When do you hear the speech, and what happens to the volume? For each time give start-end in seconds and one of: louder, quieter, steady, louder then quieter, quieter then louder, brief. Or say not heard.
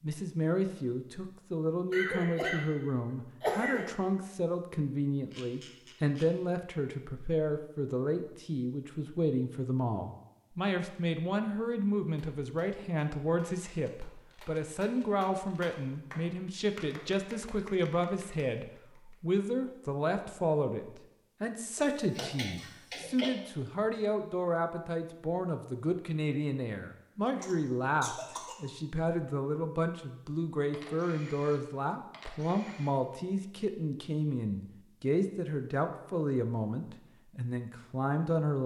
0.0-38.6 steady.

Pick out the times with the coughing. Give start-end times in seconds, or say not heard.
1.9-3.9, 21.8-23.3, 27.4-28.6.